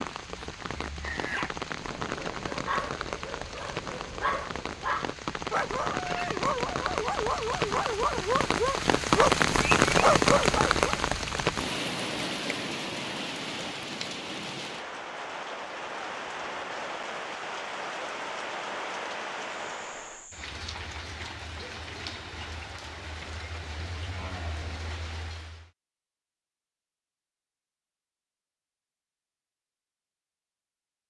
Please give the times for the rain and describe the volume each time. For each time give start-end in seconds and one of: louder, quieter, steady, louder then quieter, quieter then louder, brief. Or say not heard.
0.0-25.7 louder then quieter.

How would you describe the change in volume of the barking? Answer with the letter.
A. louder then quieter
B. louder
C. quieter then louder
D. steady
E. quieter
B.